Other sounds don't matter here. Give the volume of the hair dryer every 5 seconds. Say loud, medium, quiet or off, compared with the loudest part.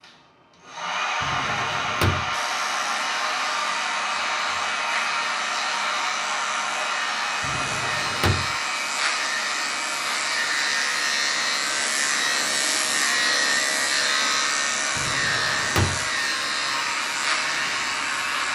loud, loud, medium, loud.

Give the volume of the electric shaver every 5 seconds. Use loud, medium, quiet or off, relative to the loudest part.
medium, medium, loud, loud.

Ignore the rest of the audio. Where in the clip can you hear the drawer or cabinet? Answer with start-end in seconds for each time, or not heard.
1.2-2.4, 7.4-8.6, 14.9-16.1.